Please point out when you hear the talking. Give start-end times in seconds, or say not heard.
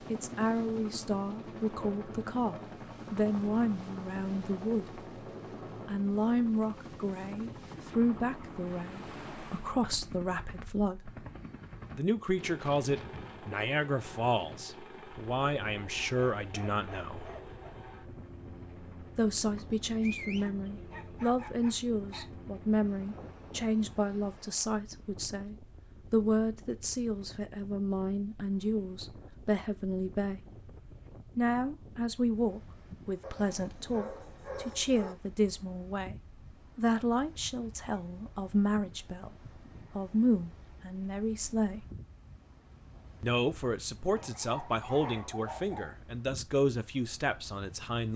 0.0-5.0, 5.8-11.1, 11.9-17.3, 19.1-30.4, 31.4-41.9, 43.2-48.1.